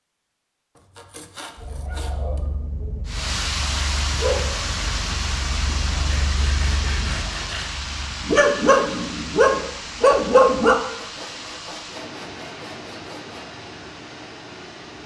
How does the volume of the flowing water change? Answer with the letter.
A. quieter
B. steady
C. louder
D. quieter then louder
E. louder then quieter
A.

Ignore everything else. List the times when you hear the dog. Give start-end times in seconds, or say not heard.
1.6-10.8.